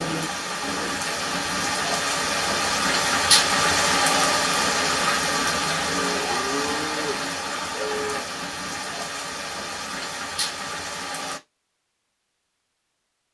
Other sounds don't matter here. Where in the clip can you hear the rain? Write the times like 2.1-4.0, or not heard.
0.0-11.4.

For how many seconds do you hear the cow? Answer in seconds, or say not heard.
3 s.